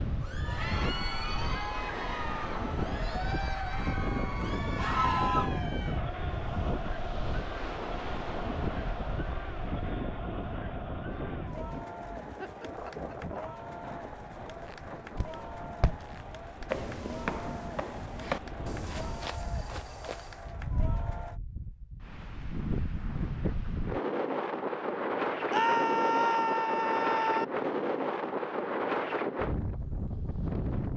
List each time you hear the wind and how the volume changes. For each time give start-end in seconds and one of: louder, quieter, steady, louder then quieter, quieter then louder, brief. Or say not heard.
0.0-30.9 quieter then louder.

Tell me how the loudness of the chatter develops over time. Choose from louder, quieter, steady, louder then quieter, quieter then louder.
quieter.